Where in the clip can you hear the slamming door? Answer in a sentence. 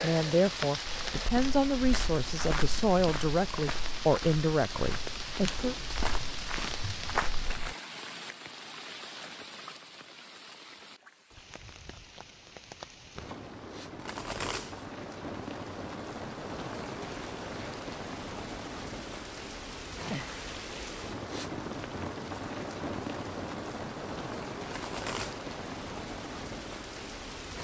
The slamming door can't be heard in this clip.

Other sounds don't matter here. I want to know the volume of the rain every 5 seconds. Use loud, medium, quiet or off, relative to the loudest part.
loud, loud, medium, loud, loud, loud.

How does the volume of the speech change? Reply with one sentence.
The loudness of the speech stays about the same.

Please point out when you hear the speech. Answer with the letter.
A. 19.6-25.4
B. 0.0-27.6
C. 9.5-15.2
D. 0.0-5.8
D.